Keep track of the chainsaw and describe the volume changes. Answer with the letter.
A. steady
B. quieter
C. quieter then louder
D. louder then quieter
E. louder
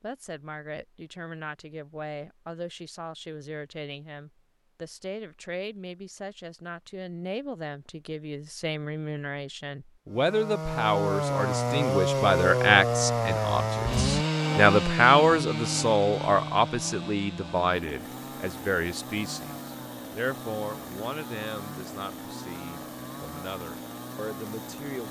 B.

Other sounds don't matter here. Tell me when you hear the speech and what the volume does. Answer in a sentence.
The speech can be heard from 0.0 to 25.0 s, getting louder then quieter.